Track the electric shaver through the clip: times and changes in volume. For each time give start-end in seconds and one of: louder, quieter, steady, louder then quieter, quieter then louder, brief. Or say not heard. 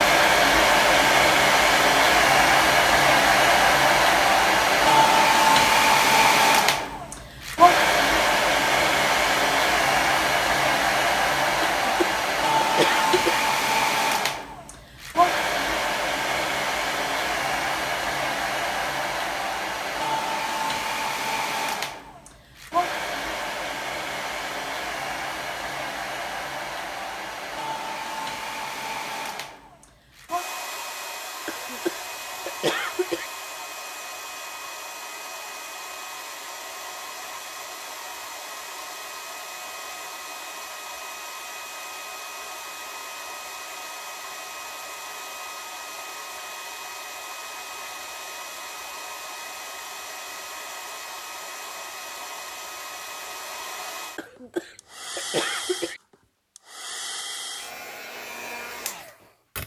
not heard.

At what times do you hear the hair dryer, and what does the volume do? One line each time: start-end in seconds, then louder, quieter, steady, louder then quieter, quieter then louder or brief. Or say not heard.
0.0-59.6 quieter.